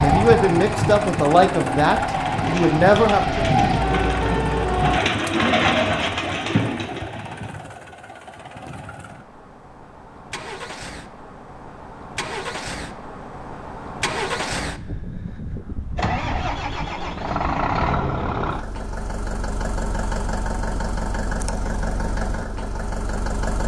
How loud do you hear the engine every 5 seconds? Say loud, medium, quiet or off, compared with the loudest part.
loud, medium, medium, loud, loud.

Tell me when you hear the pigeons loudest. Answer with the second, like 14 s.
6 s.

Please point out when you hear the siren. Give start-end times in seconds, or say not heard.
0.0-5.0.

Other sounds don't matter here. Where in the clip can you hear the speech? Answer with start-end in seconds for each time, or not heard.
0.0-3.5.